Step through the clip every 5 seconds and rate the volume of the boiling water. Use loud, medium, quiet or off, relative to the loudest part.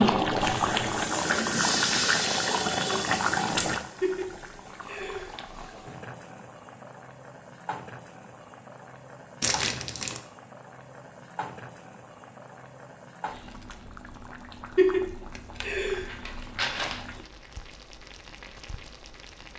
loud, quiet, quiet, quiet.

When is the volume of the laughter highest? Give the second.
15 s.